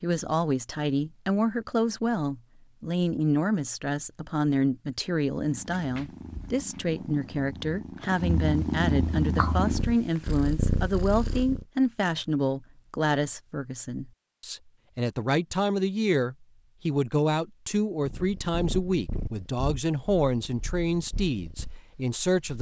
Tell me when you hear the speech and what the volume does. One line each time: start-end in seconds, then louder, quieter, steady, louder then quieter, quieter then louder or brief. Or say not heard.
0.0-22.5 steady.